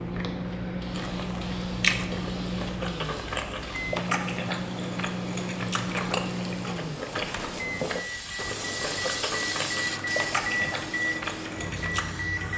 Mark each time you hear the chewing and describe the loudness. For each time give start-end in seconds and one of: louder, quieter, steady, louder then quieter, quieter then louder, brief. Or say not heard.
0.9-12.1 steady.